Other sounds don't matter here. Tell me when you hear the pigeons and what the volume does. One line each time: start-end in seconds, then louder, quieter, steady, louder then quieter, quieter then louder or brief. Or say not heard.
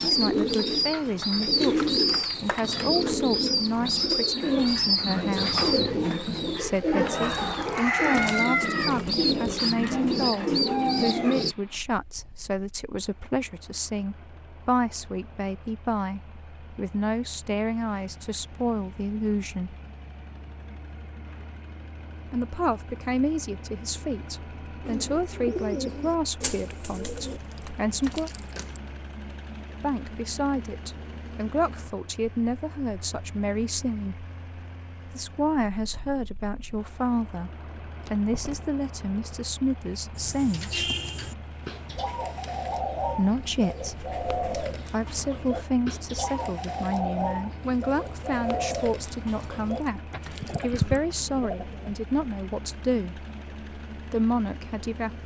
0.0-11.6 steady
24.9-27.4 brief
40.1-52.0 steady.